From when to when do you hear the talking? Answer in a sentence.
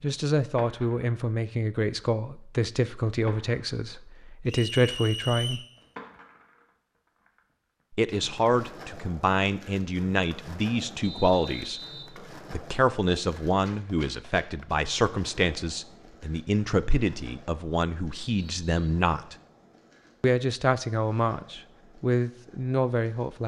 The talking can be heard from 0.0 to 5.6 s, from 7.9 to 11.8 s, from 12.5 to 19.4 s and from 20.2 to 23.4 s.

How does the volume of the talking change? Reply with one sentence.
The loudness of the talking stays about the same.